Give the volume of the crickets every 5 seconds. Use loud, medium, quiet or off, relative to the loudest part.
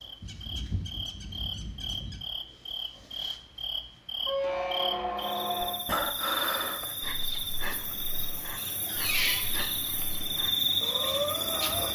medium, medium, loud.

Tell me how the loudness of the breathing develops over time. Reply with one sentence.
The loudness of the breathing goes down, then up.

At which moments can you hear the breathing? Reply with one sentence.
The breathing can be heard from 5.8 to 11.9 s.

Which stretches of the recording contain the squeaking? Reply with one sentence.
The squeaking can be heard from 0.2 to 2.2 s, from 4.2 to 5.8 s and from 8.6 to 9.8 s.